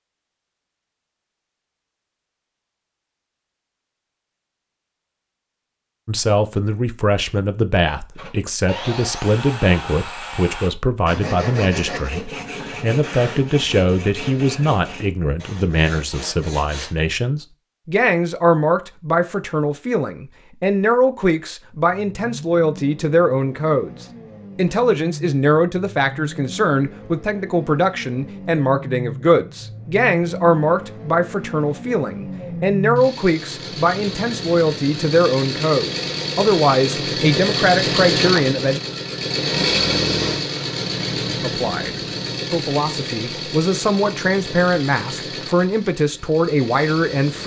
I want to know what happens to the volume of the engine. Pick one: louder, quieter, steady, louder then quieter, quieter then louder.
louder then quieter.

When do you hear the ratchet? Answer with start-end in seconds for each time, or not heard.
not heard.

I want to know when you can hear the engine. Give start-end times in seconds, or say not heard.
21.9-47.4.